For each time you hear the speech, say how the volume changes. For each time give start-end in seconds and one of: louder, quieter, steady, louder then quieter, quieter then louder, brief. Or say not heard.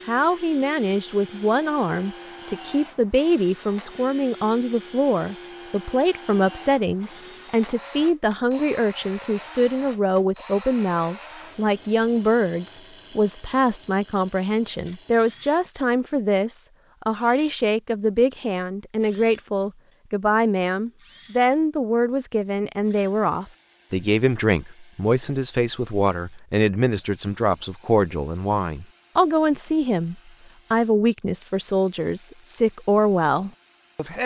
0.1-34.2 steady.